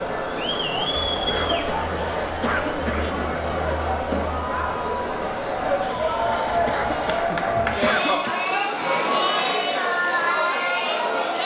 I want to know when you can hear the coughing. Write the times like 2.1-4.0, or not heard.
0.9-3.2, 6.5-8.3.